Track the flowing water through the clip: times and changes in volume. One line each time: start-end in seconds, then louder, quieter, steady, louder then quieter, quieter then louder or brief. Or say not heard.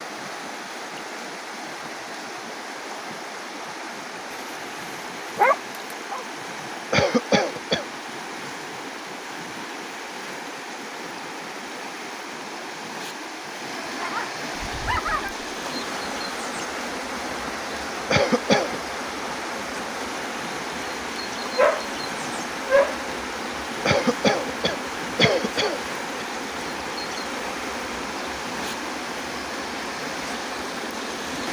0.0-31.4 steady.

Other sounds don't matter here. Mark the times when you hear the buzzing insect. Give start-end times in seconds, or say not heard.
14.6-31.4.